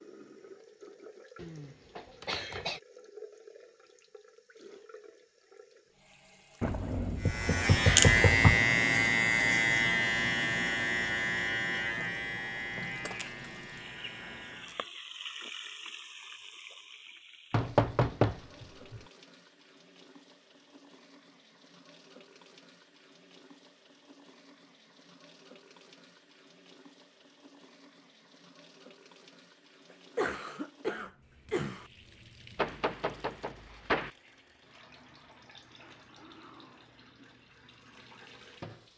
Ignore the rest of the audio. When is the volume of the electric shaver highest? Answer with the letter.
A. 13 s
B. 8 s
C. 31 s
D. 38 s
B.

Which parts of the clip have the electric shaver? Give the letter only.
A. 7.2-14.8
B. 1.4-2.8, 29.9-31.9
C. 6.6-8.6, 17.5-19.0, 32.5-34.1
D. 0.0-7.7
A.